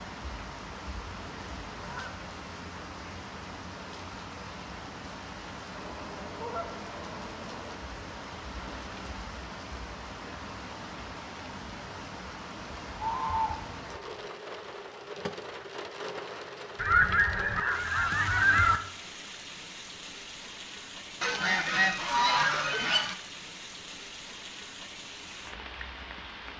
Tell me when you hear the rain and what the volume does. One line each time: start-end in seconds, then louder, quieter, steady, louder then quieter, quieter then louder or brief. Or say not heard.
0.0-26.5 steady.